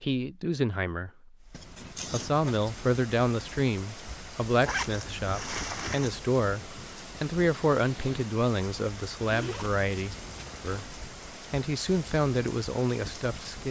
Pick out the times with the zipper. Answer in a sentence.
You can hear the zipper from 1.5 to 2.5 s, from 4.7 to 6.2 s and from 9.2 to 10.9 s.